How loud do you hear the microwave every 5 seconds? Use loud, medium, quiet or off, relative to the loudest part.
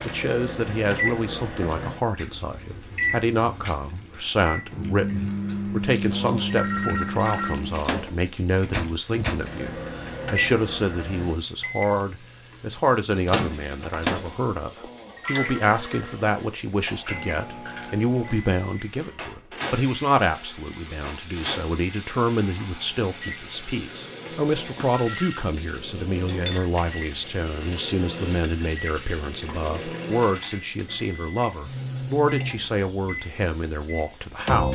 loud, loud, loud, medium, medium, medium, loud.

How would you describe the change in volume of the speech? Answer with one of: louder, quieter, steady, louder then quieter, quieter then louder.
steady.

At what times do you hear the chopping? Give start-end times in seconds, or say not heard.
not heard.